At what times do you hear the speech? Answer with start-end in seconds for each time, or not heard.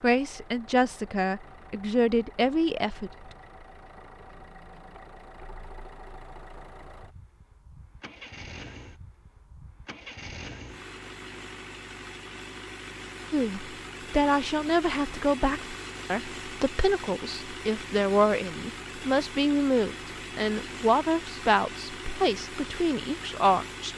0.0-3.1, 13.3-23.9.